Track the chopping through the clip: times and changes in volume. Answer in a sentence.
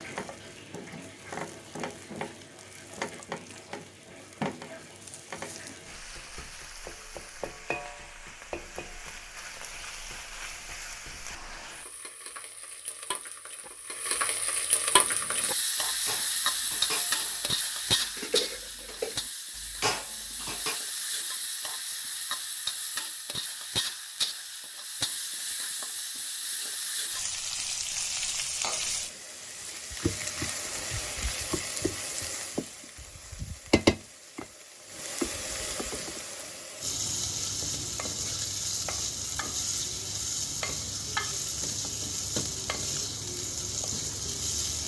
You can't hear the chopping here.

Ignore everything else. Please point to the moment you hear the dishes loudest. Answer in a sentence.
The loudest moment of the dishes is at 20 seconds.